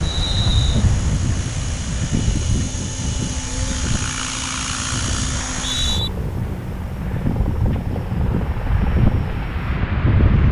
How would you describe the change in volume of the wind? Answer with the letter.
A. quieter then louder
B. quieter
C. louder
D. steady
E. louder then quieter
A.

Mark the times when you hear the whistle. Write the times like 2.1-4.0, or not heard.
0.0-0.8, 5.3-6.1.